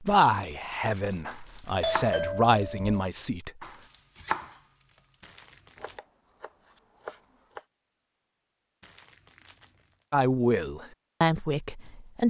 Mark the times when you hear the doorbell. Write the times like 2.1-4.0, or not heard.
1.8-3.0.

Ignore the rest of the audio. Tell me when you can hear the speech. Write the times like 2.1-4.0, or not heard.
0.0-3.5, 10.1-12.2.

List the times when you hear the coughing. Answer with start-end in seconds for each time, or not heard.
not heard.